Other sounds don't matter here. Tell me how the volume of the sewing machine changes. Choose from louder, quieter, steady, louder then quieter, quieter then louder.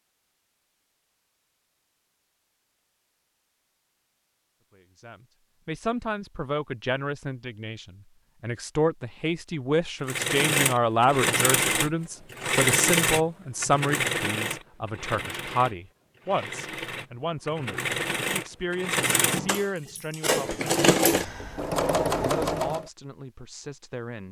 quieter then louder.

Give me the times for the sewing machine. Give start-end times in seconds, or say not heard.
10.1-22.9.